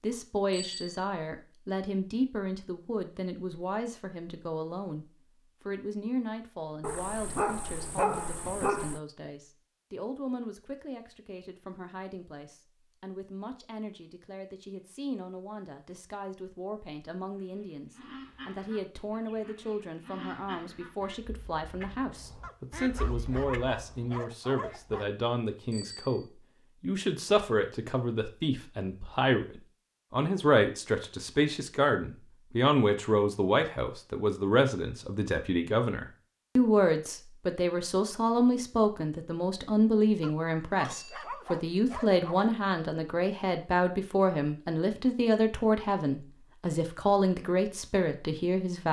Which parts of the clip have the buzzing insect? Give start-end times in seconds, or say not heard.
not heard.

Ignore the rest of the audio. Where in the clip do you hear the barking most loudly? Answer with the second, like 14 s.
8 s.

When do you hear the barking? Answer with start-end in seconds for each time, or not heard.
6.8-9.0, 22.4-25.1, 40.2-42.5.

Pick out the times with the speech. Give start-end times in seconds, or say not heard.
0.0-48.8.